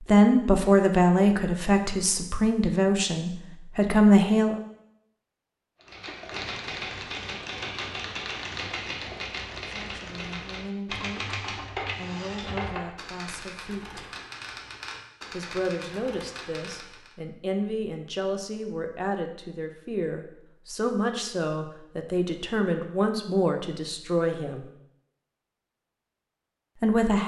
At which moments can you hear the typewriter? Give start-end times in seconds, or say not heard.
5.8-17.1.